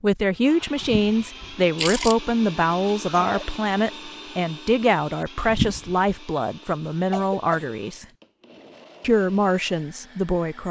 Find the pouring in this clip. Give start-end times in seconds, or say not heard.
0.8-2.1, 5.5-6.0.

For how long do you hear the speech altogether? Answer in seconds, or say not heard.
10 s.